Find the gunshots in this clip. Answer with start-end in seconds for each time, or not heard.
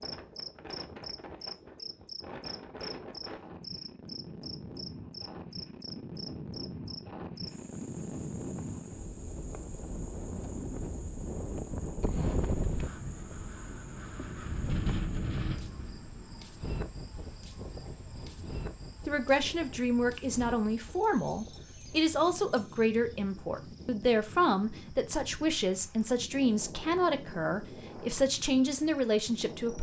not heard.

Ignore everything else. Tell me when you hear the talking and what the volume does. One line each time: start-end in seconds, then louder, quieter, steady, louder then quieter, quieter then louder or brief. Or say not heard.
19.1-29.7 steady.